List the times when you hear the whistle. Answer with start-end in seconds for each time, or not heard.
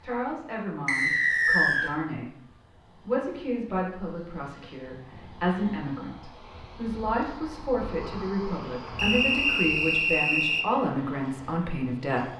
0.8-1.9, 8.9-10.7.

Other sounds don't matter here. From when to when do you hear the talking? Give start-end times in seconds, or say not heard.
0.0-2.4, 3.0-12.3.